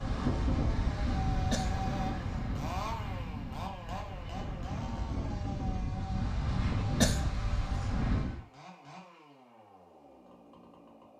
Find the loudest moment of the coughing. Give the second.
7 s.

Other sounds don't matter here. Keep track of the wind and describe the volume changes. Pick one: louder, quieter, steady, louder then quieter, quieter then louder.
quieter then louder.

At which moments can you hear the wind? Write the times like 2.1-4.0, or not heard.
0.0-8.4.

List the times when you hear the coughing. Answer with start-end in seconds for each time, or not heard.
1.5-2.4, 7.0-7.8.